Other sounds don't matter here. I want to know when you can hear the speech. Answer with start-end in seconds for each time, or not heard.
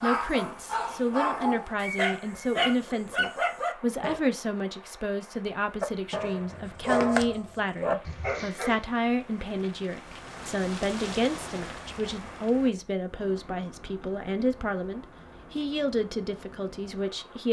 0.0-17.4.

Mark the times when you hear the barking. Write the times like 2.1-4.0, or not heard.
0.0-4.2, 5.8-8.8.